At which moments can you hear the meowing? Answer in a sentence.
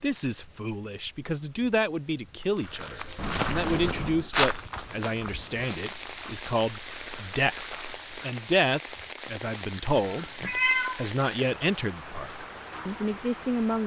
You can hear the meowing from 3.1 to 4.3 s and from 9.9 to 11.1 s.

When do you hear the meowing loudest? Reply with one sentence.
The loudest moment of the meowing is at 11 seconds.